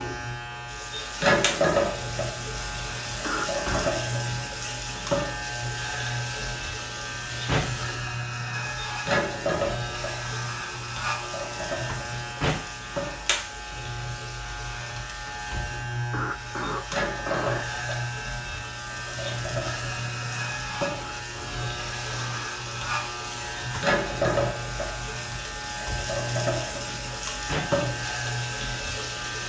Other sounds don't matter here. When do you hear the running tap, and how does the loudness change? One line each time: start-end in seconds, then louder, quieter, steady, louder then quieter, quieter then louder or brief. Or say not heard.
0.0-29.4 quieter then louder.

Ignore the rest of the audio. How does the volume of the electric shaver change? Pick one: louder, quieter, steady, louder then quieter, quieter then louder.
steady.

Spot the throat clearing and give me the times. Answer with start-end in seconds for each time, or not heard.
3.2-4.0, 16.1-17.8, 21.0-22.6.